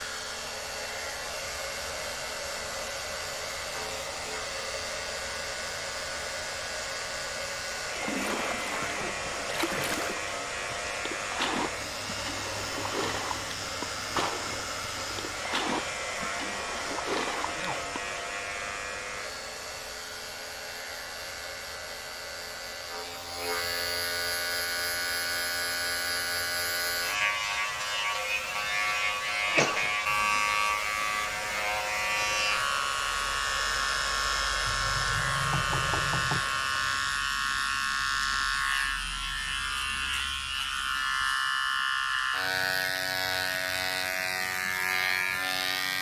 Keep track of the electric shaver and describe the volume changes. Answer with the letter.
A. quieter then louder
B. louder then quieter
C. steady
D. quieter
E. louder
E.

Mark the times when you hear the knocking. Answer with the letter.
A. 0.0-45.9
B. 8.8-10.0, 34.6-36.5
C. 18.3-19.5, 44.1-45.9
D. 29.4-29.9
B.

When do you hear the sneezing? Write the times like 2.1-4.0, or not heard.
29.4-29.9.